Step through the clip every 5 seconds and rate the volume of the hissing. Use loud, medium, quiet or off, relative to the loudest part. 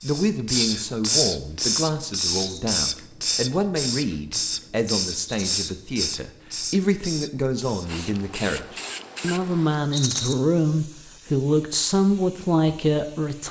loud, medium, quiet.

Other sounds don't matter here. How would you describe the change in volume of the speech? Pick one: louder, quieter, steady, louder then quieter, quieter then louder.
louder.